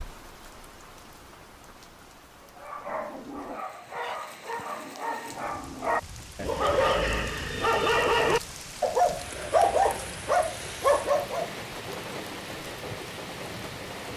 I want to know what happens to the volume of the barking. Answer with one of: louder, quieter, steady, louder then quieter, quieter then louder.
louder.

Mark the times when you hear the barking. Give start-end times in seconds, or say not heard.
2.4-11.5.